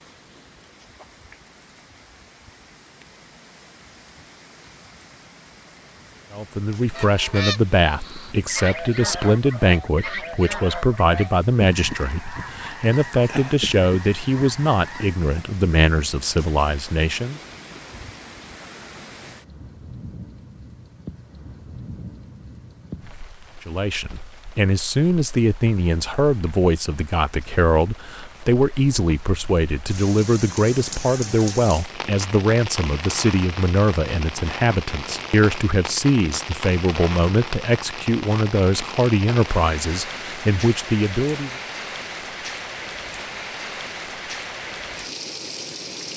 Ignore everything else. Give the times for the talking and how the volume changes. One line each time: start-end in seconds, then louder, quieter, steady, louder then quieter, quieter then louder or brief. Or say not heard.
6.3-17.4 steady
23.6-41.5 steady.